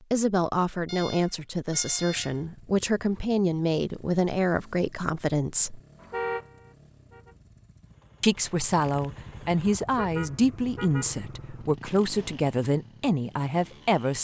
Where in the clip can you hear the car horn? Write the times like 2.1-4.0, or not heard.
0.8-2.4, 6.0-7.3, 9.9-11.2.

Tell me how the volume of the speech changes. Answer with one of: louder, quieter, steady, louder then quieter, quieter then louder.
steady.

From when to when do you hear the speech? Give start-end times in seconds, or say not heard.
0.1-5.8, 8.2-14.1.